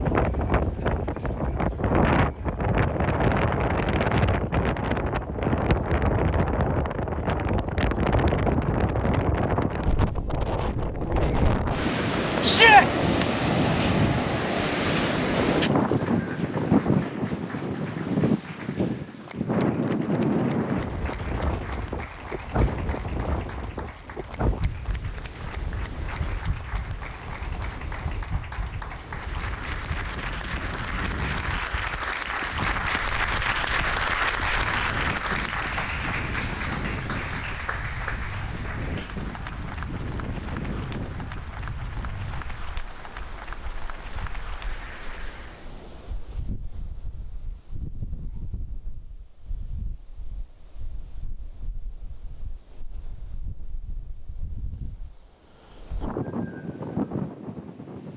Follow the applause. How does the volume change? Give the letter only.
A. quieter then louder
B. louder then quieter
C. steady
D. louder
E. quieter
B.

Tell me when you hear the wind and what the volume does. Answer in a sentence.
You can hear the wind from 0.0 to 58.1 s, getting quieter.